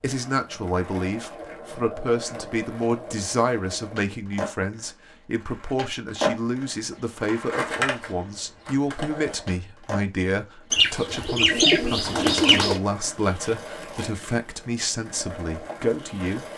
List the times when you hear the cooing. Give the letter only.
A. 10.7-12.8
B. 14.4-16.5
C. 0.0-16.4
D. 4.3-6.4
A.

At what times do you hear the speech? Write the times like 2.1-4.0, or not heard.
0.0-16.4.